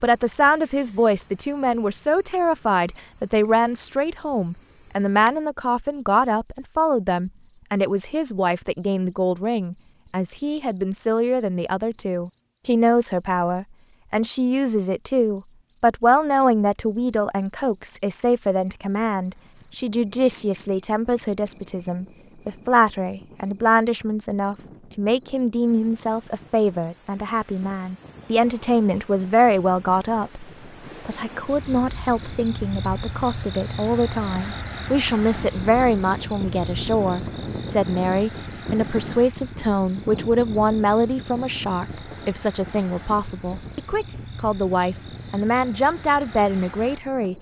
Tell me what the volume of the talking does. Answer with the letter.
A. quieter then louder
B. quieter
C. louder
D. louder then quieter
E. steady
E.